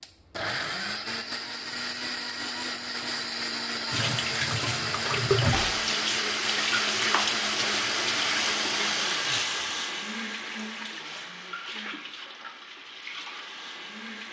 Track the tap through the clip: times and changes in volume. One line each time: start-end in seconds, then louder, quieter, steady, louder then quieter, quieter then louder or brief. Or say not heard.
3.9-14.2 quieter.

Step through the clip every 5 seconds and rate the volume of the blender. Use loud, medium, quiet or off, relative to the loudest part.
loud, loud, off.